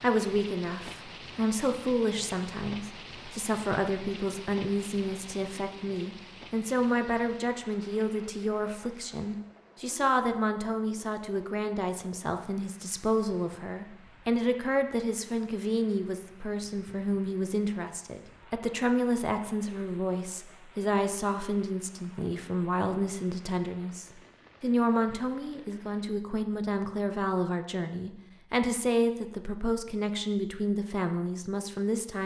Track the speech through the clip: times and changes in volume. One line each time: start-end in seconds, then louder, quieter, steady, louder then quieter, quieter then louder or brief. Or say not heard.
0.0-32.2 steady.